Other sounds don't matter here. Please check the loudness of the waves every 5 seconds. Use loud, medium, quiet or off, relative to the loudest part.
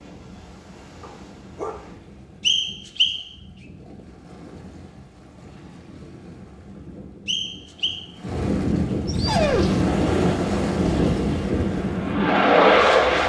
quiet, loud, loud.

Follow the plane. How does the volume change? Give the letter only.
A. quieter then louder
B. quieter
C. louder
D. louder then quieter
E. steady
C.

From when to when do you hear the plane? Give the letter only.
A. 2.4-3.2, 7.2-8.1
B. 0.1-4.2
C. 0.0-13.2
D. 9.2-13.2
D.